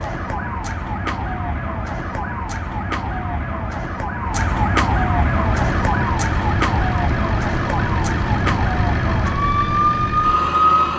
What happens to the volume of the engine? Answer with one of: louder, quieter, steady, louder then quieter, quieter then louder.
steady.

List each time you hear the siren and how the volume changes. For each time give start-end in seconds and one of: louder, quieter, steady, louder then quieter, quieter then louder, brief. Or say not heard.
0.0-10.9 louder.